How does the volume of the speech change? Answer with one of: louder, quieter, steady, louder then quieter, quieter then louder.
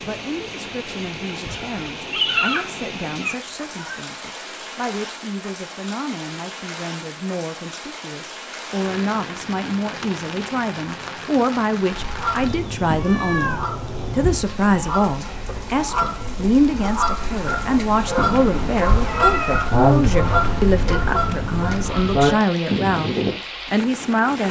louder.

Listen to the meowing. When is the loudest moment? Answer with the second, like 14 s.
2 s.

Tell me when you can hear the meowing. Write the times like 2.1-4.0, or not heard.
1.2-4.0, 12.4-14.5, 18.1-19.6.